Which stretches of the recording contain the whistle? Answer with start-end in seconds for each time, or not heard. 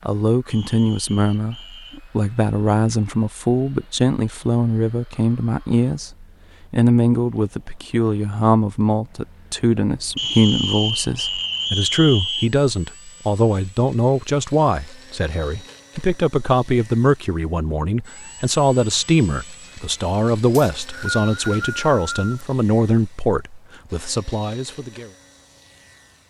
0.5-2.0, 10.2-12.5, 20.5-22.4.